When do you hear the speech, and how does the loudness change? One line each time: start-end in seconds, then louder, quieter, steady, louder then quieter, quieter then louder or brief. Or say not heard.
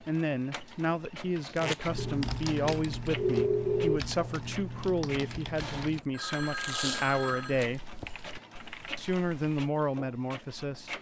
0.0-8.0 steady
8.9-10.9 brief.